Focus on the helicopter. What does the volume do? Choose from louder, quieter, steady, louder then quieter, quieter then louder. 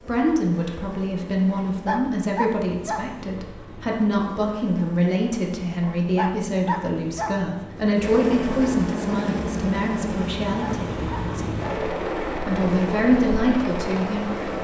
louder.